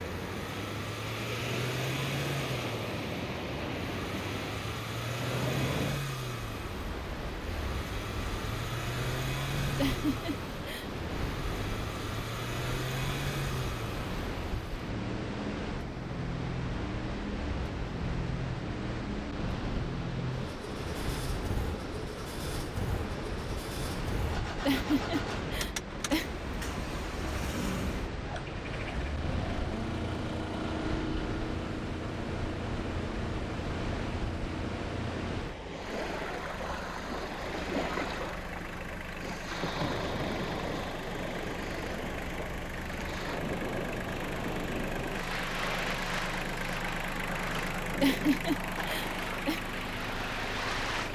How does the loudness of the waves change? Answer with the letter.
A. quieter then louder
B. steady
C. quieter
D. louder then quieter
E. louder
B.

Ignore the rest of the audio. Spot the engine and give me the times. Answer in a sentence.
You can hear the engine from 0.0 to 51.1 s.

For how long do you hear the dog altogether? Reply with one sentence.
The dog can't be heard in this clip.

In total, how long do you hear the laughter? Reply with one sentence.
You can hear the laughter for 4 seconds altogether.